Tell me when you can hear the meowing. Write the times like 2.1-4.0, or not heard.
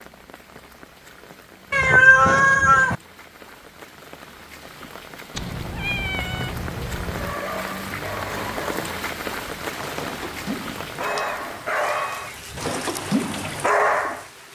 1.7-3.0, 5.3-7.3, 11.0-13.0.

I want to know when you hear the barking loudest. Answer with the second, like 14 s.
14 s.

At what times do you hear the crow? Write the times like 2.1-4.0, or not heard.
not heard.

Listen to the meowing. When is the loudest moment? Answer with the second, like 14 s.
2 s.